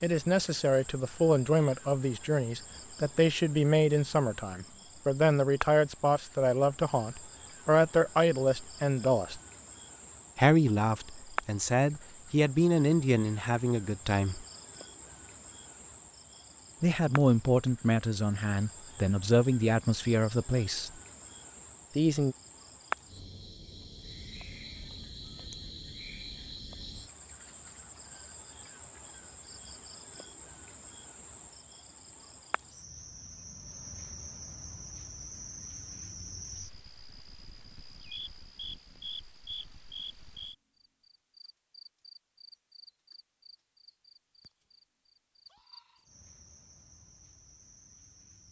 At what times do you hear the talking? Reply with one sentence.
The talking can be heard from 0.0 to 9.4 s, from 10.3 to 14.4 s, from 16.8 to 20.9 s and from 21.9 to 22.4 s.